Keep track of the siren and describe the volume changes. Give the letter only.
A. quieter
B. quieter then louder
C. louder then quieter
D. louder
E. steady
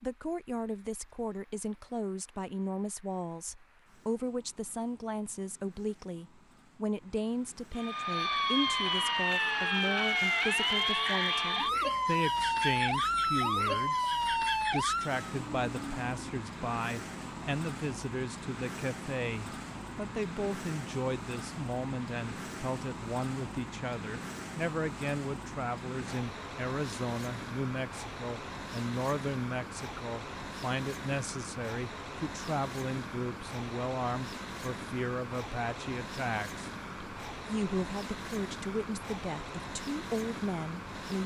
E.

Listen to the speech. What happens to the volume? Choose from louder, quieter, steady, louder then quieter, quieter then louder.
steady.